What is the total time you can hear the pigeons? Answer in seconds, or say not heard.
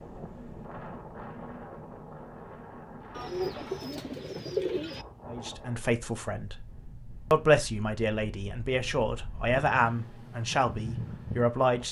2 s.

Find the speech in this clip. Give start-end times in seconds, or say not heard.
5.3-6.7, 7.3-11.8.